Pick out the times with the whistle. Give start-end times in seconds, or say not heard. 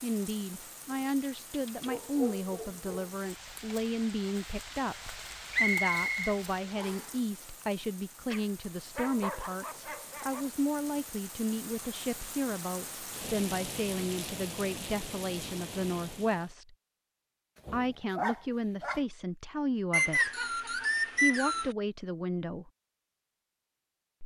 5.5-7.1, 19.9-21.8.